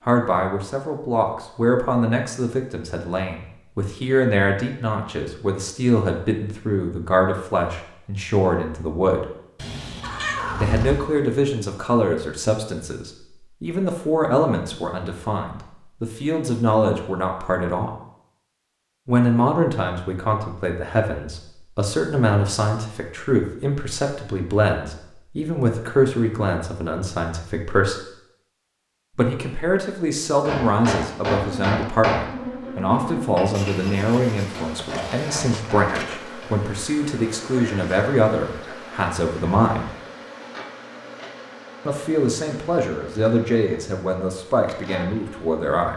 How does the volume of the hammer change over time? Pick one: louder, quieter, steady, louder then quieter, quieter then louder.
quieter.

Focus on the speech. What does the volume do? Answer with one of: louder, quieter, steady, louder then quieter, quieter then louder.
steady.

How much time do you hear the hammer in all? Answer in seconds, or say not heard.
6 s.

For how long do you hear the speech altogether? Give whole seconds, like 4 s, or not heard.
40 s.